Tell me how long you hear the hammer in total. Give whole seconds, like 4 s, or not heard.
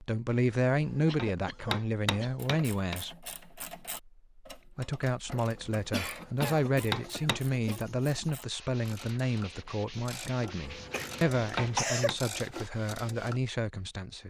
6 s.